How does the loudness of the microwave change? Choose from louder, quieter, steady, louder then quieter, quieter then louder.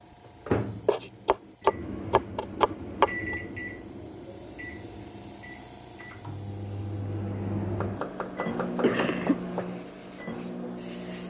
quieter then louder.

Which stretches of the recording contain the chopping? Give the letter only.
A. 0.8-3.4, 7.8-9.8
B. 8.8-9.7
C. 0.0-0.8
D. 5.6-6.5
A.